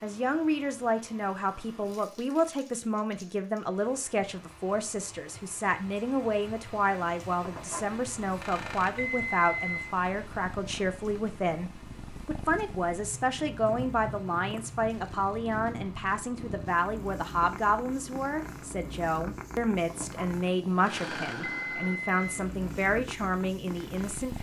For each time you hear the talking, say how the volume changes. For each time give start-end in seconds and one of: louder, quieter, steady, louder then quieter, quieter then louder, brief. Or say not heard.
0.0-24.3 steady.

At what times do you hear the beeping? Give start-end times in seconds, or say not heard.
7.5-9.9, 19.9-22.4.